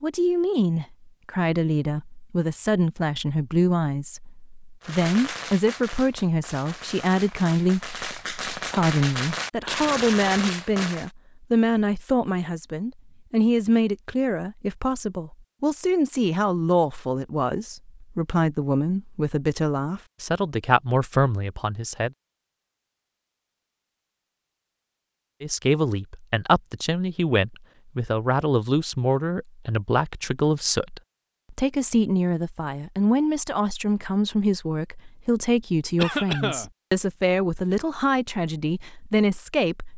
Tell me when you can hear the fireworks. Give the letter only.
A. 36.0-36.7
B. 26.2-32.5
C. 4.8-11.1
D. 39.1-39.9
C.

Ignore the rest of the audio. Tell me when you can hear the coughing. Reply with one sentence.
The coughing can be heard from 36.0 to 36.7 s.